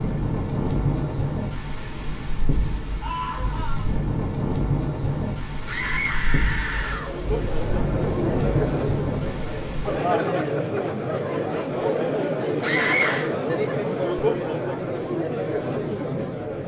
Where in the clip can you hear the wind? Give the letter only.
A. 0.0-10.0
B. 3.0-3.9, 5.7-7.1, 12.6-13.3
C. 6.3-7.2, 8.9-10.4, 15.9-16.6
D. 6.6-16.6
A.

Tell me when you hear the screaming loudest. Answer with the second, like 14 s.
13 s.